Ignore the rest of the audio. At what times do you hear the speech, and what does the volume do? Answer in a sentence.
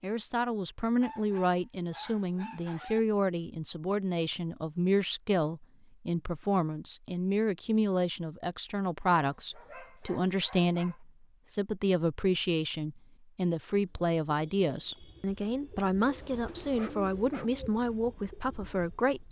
You can hear the speech from 0.0 to 19.2 s, at a steady volume.